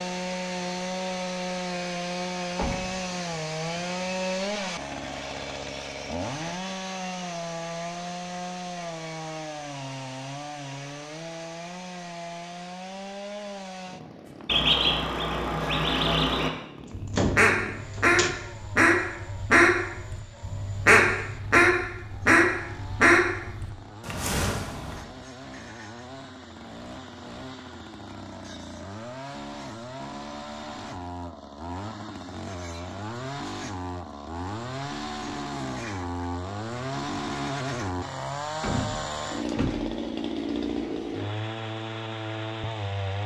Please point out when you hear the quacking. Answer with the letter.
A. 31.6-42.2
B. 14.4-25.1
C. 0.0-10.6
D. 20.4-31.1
B.